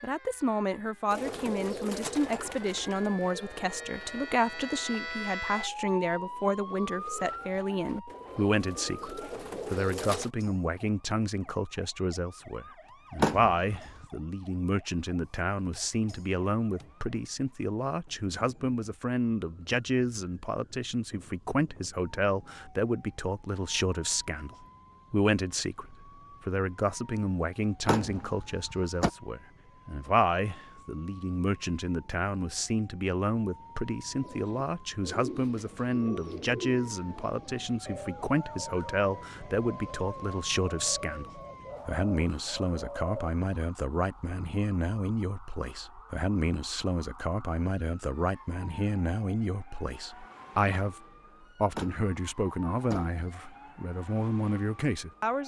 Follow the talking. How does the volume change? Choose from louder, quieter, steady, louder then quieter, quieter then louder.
steady.